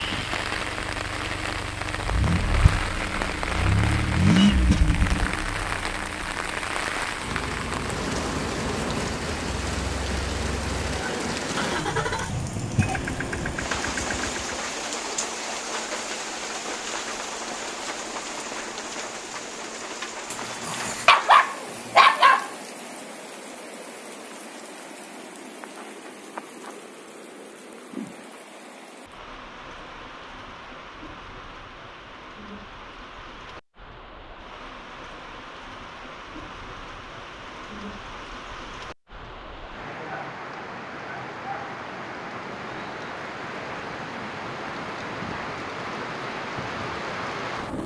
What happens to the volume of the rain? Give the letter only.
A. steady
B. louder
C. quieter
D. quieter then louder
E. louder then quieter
D.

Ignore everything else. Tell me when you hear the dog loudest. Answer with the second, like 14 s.
22 s.